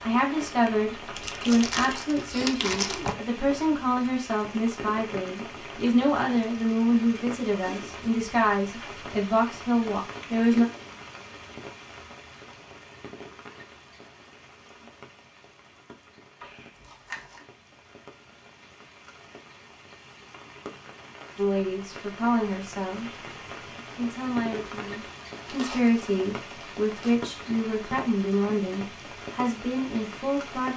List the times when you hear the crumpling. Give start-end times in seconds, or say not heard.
1.1-3.1, 16.4-17.4, 25.4-27.2.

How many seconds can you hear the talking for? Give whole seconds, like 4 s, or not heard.
19 s.